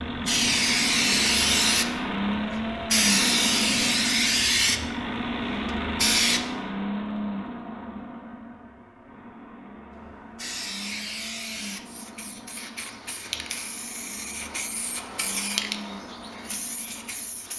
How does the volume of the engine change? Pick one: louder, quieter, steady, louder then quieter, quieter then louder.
quieter.